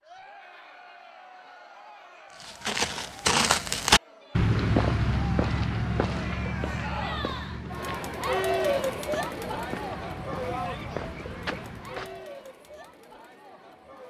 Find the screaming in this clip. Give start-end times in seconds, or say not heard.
not heard.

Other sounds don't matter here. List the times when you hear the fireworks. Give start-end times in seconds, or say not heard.
not heard.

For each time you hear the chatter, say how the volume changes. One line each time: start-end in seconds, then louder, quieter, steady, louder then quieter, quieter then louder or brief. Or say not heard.
0.0-14.0 louder then quieter.